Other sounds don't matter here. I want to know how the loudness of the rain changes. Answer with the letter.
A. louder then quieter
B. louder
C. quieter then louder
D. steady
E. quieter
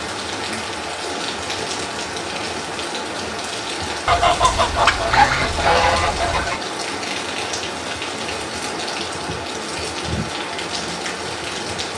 D.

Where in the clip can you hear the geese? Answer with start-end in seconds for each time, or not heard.
4.0-6.6.